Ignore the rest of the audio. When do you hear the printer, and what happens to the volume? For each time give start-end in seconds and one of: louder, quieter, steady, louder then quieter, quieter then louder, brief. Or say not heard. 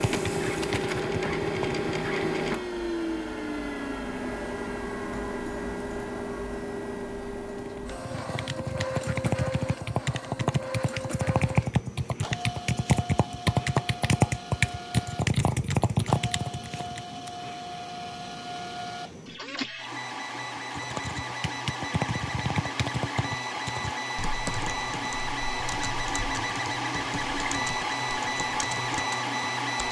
0.0-29.8 quieter then louder.